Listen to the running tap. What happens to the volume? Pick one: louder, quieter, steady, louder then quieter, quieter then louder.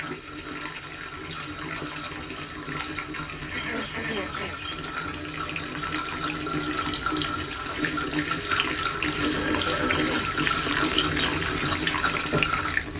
louder.